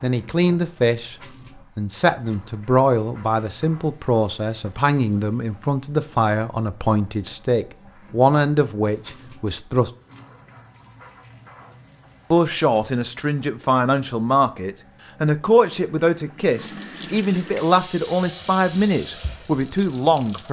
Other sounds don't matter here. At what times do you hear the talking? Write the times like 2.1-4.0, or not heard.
0.0-1.1, 1.8-9.9, 12.3-20.4.